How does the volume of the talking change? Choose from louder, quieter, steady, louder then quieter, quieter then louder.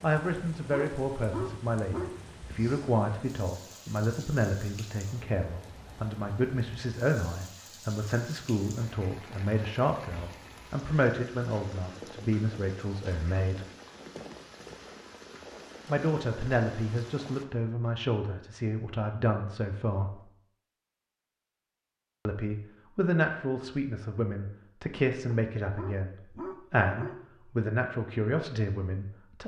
steady.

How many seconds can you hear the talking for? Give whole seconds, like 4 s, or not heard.
25 s.